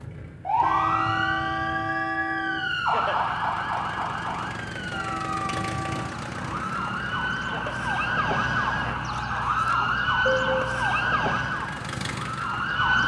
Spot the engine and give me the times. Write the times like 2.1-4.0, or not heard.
0.0-9.5, 11.3-12.9.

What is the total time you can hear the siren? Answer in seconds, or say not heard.
13 s.